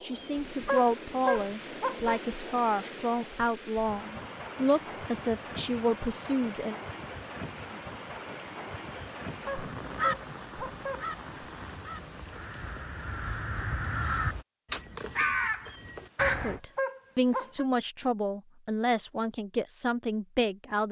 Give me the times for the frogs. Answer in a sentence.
The frogs can't be heard in this clip.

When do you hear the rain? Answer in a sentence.
You can hear the rain from 0.0 to 14.4 s.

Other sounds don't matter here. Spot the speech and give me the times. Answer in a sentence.
You can hear the speech from 0.0 to 6.8 s and from 16.4 to 20.8 s.